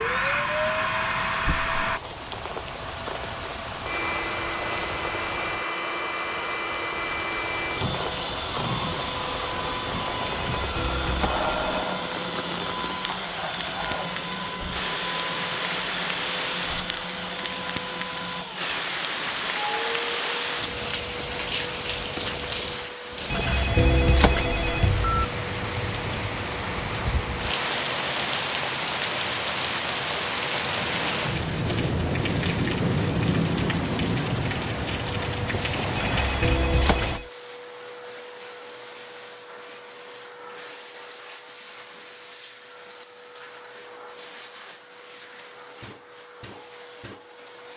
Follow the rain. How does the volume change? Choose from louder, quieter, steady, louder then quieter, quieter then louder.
louder.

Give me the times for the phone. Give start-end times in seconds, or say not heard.
10.2-11.7, 23.3-25.2, 36.0-37.2.